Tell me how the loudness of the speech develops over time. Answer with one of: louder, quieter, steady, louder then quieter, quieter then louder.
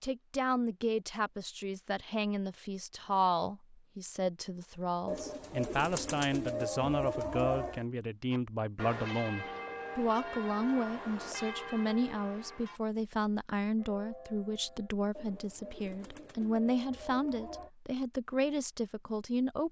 steady.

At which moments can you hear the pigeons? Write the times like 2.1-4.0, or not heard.
5.0-7.8, 15.2-17.7.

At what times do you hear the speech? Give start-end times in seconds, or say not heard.
0.0-19.6.